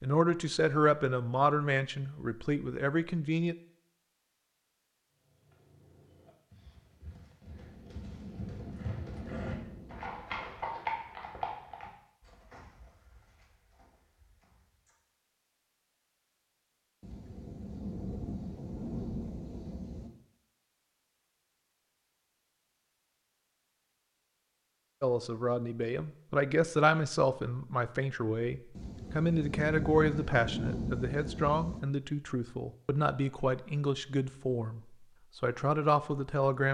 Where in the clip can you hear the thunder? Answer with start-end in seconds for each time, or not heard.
7.4-10.2, 17.0-20.1, 28.8-31.8.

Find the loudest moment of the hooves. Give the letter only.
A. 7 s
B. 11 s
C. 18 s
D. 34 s
B.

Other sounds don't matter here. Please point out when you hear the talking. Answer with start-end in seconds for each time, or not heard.
0.0-3.5, 25.0-36.6.